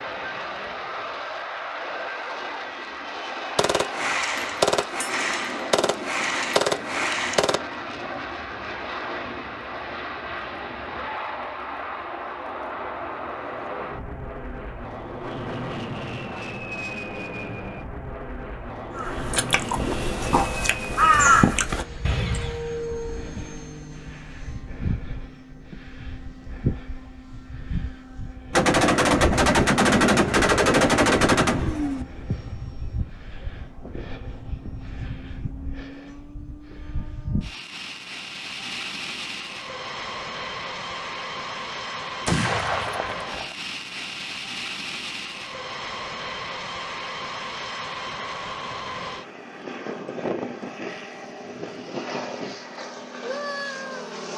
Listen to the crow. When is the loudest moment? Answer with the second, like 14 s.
21 s.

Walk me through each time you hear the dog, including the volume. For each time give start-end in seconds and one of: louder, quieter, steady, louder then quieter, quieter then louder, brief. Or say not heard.
not heard.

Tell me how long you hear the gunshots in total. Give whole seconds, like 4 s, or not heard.
9 s.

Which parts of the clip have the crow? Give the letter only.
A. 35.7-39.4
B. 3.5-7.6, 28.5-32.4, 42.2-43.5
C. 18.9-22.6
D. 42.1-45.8
C.